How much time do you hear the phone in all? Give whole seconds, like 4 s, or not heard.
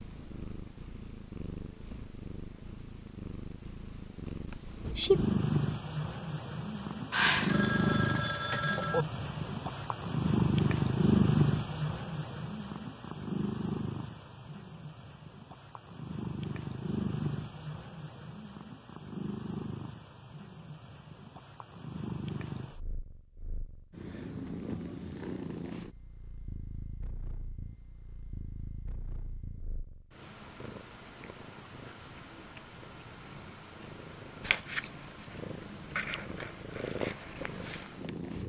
2 s.